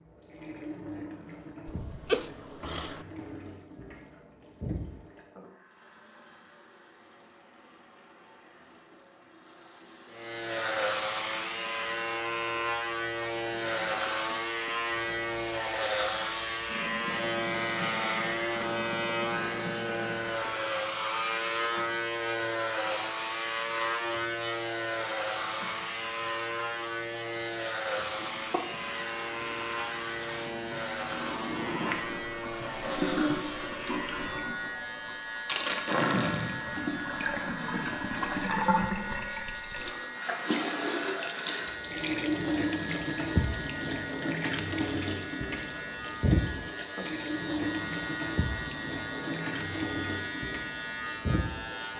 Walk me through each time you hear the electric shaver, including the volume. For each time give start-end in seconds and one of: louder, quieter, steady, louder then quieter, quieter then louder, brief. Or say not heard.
10.1-51.9 quieter.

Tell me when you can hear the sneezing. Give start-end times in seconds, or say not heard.
1.6-3.0.